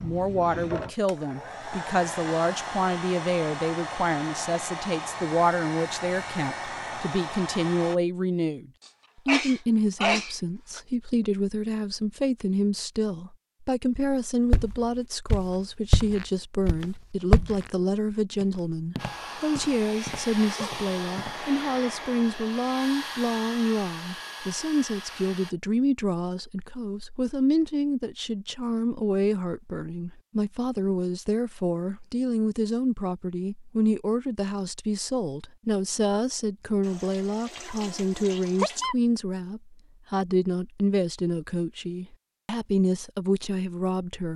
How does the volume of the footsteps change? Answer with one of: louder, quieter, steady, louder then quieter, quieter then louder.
quieter.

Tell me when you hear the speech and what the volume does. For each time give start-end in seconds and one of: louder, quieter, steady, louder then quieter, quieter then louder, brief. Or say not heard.
0.0-44.3 steady.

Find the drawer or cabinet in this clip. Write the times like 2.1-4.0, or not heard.
not heard.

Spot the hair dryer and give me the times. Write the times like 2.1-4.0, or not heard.
0.0-8.0, 18.9-25.6.